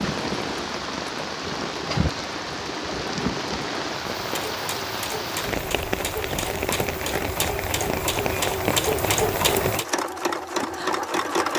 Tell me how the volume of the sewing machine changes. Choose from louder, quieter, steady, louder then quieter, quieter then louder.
louder.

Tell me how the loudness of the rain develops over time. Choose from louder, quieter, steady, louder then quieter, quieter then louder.
steady.